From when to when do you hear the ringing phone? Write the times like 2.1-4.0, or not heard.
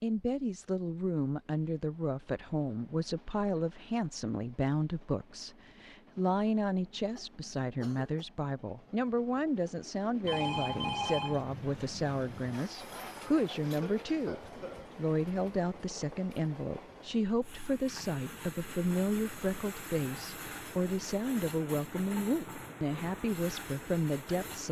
10.2-12.6.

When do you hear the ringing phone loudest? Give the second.
11 s.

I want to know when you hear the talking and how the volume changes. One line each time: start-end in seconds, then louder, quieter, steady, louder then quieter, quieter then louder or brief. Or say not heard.
0.0-24.6 steady.